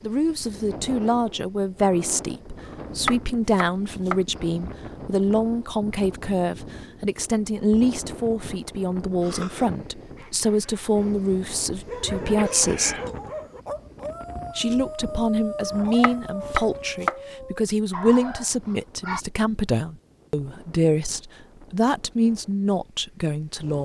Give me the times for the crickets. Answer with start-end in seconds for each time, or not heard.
not heard.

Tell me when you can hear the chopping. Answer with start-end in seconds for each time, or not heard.
3.0-4.2, 16.0-17.1.